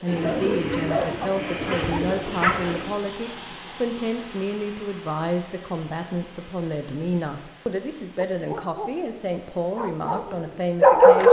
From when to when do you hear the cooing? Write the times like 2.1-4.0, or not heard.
0.1-2.9.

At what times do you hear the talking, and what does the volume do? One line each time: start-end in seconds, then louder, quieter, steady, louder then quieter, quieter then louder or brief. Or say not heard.
0.0-11.2 steady.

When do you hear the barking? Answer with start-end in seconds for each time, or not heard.
0.2-2.6, 8.2-11.2.